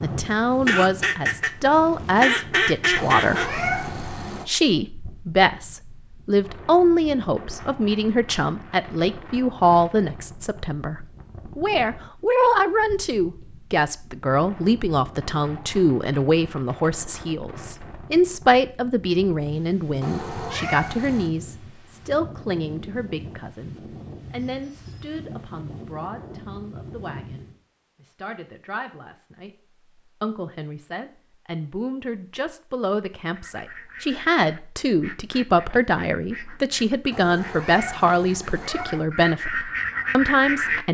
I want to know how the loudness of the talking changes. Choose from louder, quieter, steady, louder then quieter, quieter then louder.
quieter then louder.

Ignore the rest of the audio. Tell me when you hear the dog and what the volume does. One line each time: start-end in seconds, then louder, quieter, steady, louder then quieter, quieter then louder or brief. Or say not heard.
not heard.